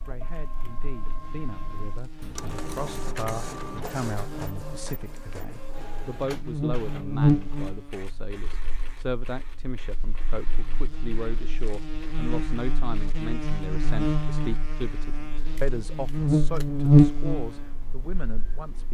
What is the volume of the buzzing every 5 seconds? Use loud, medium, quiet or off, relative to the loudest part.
quiet, medium, medium, loud.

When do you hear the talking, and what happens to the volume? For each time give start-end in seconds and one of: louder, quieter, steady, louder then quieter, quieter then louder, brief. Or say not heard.
0.1-18.8 steady.